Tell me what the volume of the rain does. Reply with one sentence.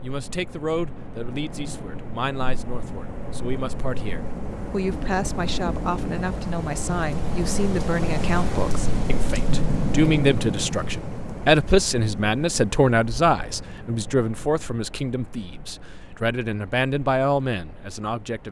The volume of the rain goes up, then down.